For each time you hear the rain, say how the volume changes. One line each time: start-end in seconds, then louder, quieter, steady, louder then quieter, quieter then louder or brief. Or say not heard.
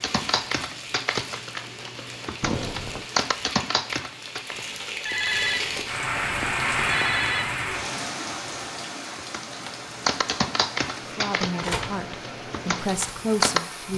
0.0-13.9 louder then quieter.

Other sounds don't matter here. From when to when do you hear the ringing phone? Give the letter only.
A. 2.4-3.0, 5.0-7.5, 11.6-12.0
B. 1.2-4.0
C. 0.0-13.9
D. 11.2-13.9
A.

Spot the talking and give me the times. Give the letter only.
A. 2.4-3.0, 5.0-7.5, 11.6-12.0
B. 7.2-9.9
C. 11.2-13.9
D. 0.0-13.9
C.